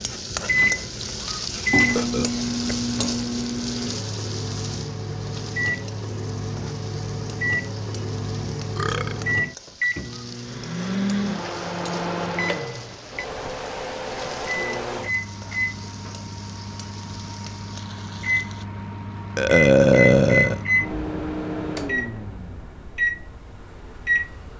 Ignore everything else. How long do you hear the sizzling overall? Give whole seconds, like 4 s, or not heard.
19 s.